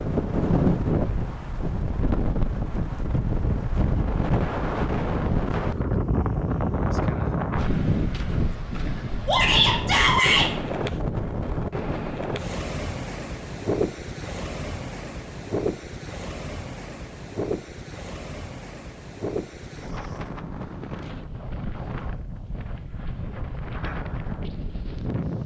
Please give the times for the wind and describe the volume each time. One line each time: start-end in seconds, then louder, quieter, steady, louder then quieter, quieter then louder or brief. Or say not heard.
0.0-25.4 quieter.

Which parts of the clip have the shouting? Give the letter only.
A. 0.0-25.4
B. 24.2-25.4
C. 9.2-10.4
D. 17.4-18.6
C.